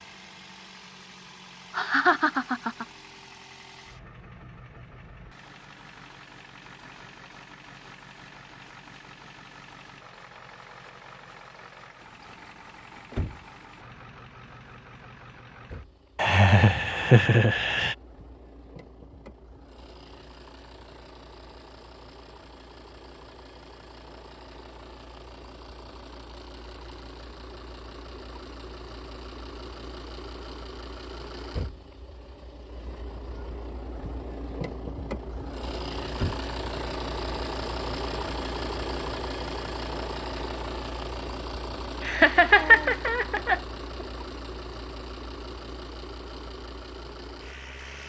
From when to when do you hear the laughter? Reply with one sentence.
You can hear the laughter from 1.7 to 2.9 s, from 16.1 to 17.9 s and from 42.0 to 43.6 s.